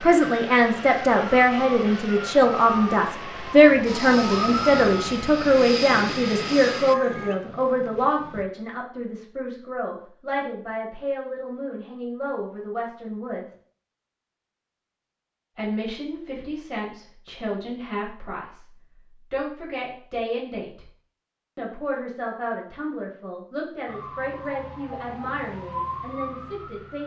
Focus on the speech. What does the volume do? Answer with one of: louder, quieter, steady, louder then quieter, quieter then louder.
quieter.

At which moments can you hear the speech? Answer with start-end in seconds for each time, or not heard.
0.0-13.6, 15.6-20.8, 21.6-27.0.